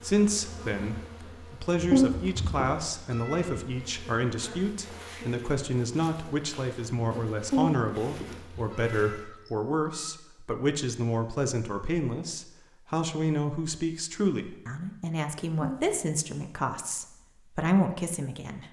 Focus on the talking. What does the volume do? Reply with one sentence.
The loudness of the talking stays about the same.